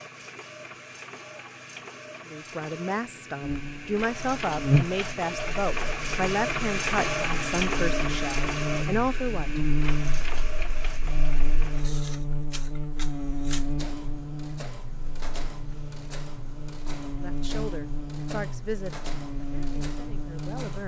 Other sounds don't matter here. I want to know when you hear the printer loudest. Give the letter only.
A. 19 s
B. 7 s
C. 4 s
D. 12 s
B.